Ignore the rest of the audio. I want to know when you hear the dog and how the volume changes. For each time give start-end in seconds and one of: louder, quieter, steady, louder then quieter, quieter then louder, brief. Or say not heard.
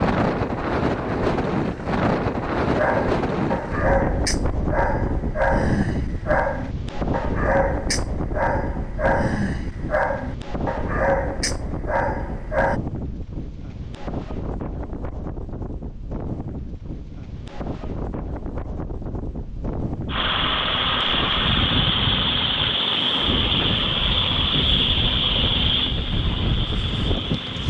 2.6-12.8 steady.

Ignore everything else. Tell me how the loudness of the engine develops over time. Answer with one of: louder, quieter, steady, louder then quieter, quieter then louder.
quieter.